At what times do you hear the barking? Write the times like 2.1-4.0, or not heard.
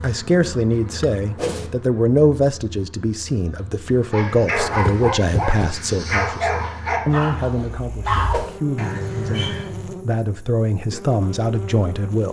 4.1-9.9.